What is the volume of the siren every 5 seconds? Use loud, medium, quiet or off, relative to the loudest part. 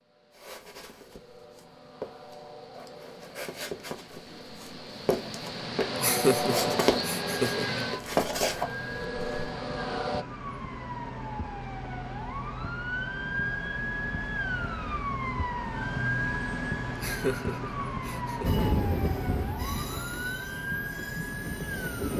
off, medium, loud, loud, loud.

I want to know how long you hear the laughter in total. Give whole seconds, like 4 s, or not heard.
3 s.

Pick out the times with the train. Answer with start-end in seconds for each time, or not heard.
0.0-10.2, 18.4-22.1.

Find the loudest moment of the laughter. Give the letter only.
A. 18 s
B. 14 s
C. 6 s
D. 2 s
C.